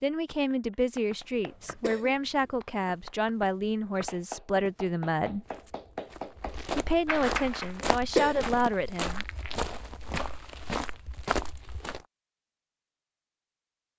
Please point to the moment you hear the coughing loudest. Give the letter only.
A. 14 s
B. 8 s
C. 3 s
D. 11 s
B.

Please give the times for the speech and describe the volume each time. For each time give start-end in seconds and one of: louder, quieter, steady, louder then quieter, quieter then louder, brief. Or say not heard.
0.0-5.5 steady
6.8-9.2 brief.